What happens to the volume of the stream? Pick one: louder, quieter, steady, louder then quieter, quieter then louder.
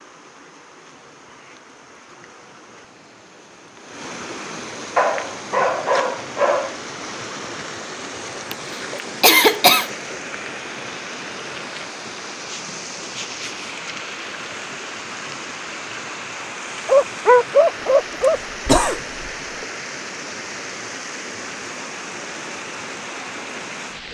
louder.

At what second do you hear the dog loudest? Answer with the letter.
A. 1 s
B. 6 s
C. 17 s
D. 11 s
C.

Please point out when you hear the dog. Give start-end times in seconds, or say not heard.
5.0-6.8, 16.9-18.4.